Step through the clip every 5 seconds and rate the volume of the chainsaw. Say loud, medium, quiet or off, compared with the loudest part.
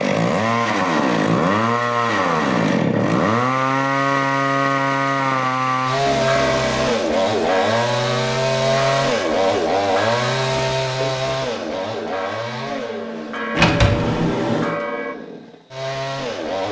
loud, loud, medium, medium.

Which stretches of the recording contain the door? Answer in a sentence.
The door can be heard from 13.6 to 14.8 s.